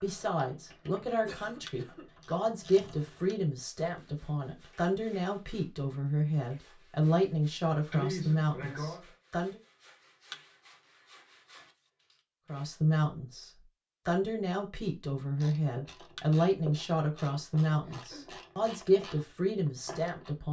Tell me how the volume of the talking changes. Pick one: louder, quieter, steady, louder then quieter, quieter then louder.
steady.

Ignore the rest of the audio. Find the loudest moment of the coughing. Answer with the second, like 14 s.
8 s.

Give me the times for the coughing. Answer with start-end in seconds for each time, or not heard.
1.2-2.0, 7.9-9.1, 17.9-18.4.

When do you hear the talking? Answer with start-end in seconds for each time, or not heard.
0.0-9.6, 12.4-20.4.